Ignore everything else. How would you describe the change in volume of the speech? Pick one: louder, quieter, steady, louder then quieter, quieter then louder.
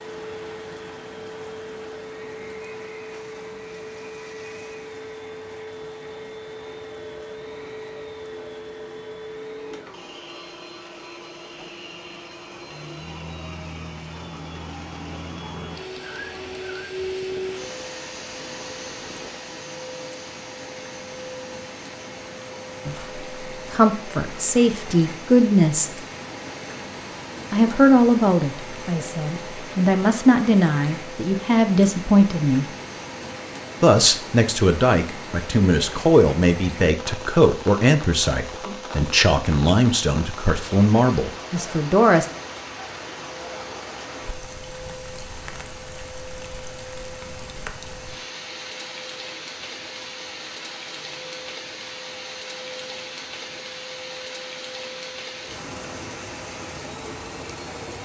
steady.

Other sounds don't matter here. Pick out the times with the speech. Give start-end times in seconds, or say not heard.
22.9-25.9, 27.5-32.6, 33.8-42.2.